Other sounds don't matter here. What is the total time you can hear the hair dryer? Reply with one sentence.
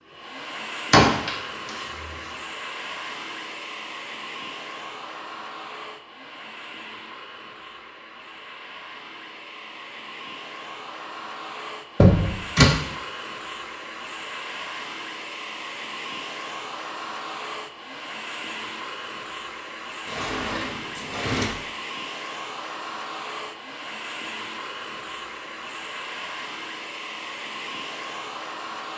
You can hear the hair dryer for 29 seconds altogether.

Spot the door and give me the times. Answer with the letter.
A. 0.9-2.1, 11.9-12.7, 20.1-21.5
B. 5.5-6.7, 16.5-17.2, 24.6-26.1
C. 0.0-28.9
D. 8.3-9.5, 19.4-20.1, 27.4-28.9
A.